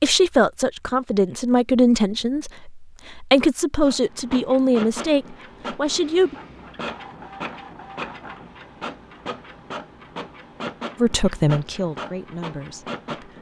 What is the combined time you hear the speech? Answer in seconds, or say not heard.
9 s.